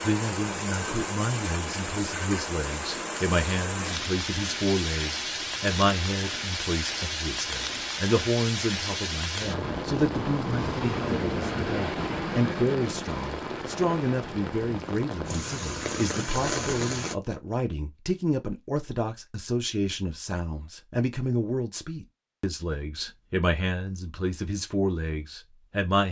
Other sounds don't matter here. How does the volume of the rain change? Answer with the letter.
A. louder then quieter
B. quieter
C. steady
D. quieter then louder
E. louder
C.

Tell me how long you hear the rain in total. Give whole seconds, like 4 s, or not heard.
17 s.